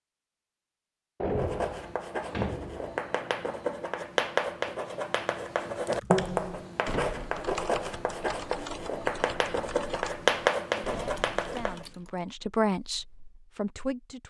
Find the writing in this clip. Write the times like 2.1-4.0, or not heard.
1.4-11.8.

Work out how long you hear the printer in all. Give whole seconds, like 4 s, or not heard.
not heard.